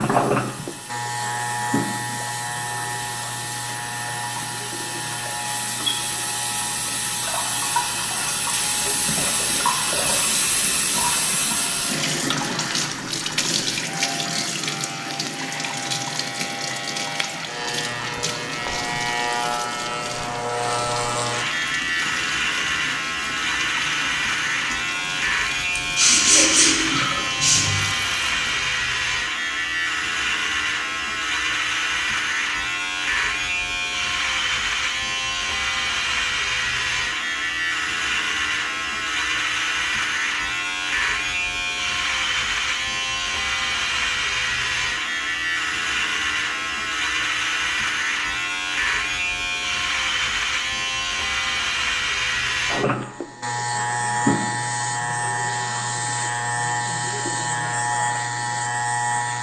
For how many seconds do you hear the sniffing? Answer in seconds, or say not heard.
2 s.